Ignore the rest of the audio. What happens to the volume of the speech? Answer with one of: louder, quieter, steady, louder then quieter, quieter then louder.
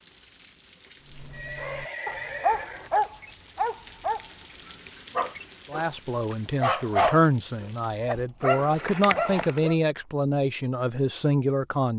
steady.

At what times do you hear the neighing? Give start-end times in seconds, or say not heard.
1.3-2.9.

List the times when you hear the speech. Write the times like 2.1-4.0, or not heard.
5.7-11.9.